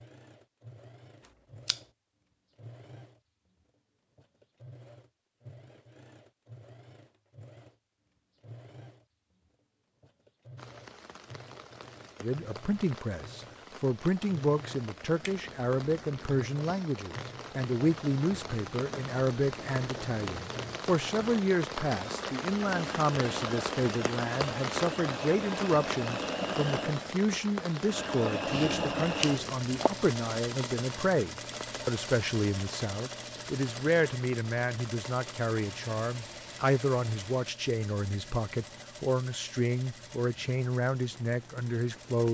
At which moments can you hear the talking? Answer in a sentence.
You can hear the talking from 12.2 to 42.3 s.